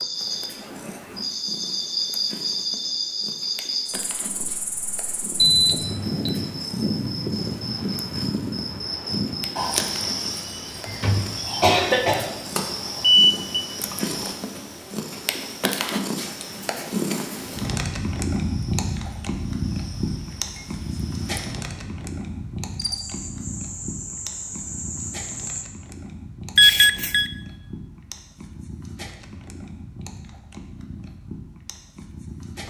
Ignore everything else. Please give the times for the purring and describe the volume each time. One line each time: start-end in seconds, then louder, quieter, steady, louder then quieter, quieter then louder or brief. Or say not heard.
0.0-32.6 louder then quieter.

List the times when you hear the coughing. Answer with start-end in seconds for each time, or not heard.
10.8-12.3.